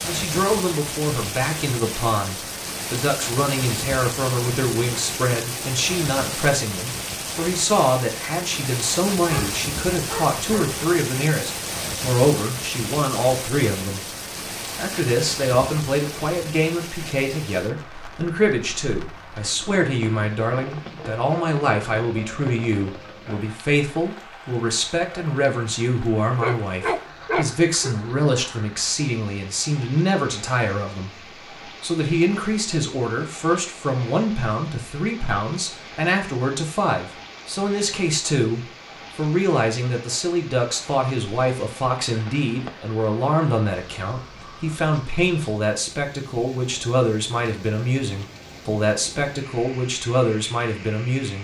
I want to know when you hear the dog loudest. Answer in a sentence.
The loudest moment of the dog is at 27 seconds.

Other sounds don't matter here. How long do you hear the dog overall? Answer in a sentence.
The dog can be heard for 3 seconds in total.